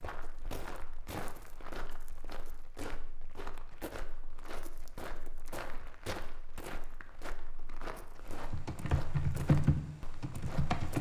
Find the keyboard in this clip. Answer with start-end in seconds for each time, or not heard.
8.5-10.9.